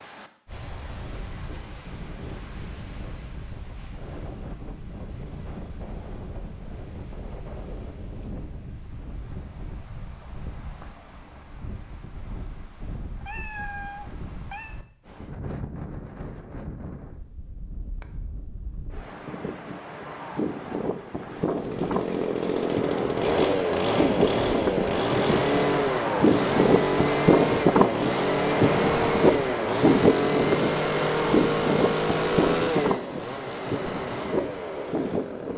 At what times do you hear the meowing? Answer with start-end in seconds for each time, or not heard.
13.2-14.8.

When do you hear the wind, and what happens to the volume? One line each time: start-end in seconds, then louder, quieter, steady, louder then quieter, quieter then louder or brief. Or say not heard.
0.0-35.5 louder.